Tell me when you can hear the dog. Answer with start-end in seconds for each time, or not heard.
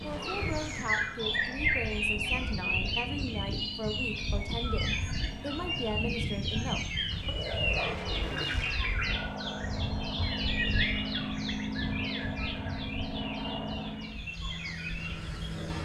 7.0-8.4.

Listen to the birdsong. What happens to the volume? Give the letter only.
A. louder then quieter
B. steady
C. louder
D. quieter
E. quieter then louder
D.